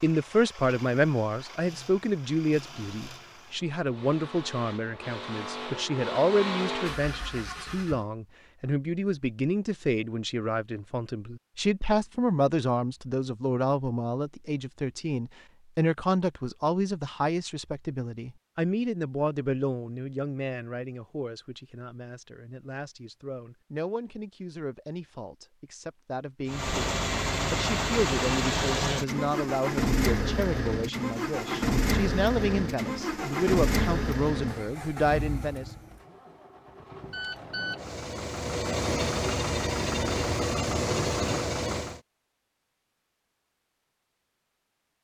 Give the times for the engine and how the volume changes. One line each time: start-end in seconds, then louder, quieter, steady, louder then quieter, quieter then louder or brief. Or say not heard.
0.0-8.1 louder
26.4-42.0 quieter then louder.